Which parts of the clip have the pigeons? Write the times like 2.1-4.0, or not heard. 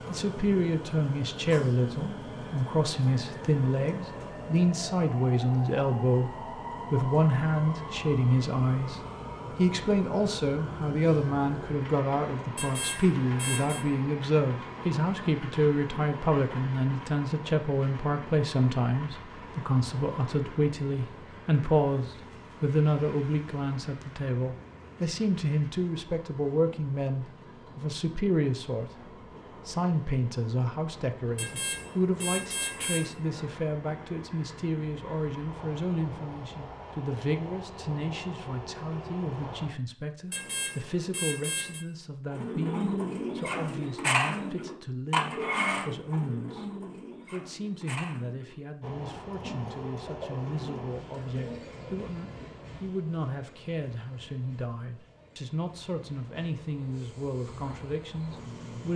42.3-52.0.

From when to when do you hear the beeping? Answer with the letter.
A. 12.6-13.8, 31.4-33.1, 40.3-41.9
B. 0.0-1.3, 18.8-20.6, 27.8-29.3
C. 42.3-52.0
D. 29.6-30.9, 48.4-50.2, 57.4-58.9
A.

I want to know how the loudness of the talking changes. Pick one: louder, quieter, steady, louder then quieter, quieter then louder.
quieter.